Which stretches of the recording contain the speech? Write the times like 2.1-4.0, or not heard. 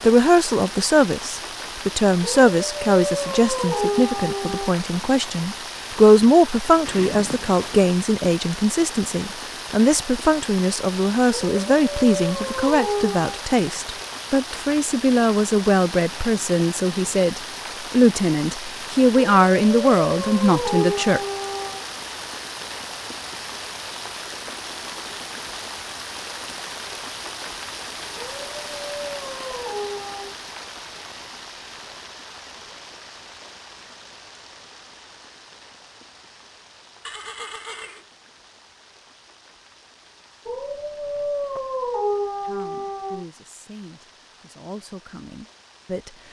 0.0-21.2, 42.4-46.1.